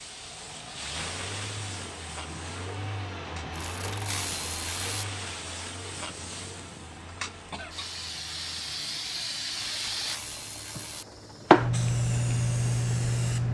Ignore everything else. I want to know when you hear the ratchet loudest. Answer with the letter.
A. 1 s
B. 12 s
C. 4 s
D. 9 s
C.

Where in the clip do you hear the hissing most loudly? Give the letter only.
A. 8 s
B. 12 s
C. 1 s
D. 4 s
B.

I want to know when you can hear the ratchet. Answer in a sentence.
The ratchet can be heard from 3.5 to 5.0 s and from 9.7 to 11.1 s.